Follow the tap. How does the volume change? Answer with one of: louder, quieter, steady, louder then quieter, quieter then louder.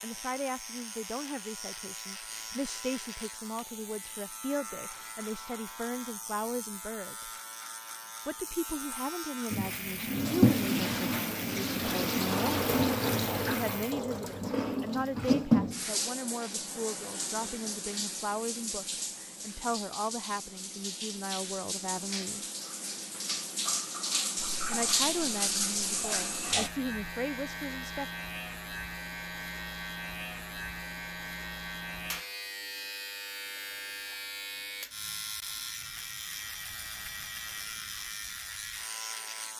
quieter then louder.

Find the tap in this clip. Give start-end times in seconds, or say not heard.
9.5-26.7.